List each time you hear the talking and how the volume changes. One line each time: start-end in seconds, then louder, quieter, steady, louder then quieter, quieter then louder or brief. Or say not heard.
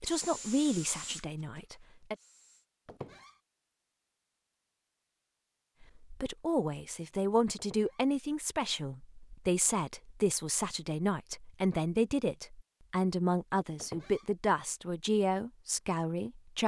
0.0-2.1 brief
5.8-16.6 steady.